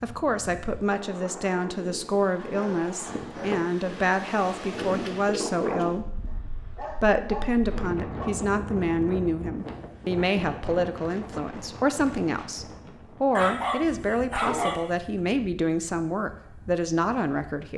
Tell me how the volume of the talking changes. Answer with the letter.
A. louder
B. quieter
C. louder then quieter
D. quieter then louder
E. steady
E.